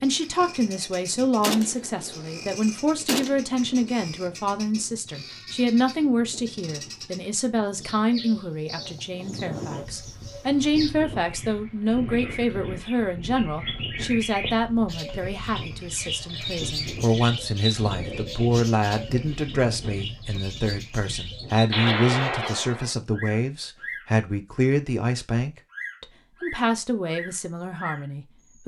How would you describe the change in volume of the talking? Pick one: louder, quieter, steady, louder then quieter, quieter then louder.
steady.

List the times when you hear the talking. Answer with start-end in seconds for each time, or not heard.
0.0-28.6.